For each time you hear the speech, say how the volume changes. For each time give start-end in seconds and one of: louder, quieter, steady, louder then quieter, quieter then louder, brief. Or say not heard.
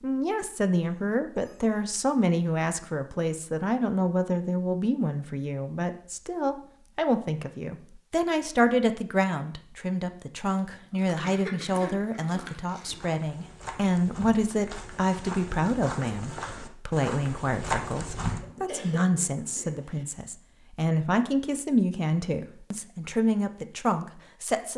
0.0-24.7 steady.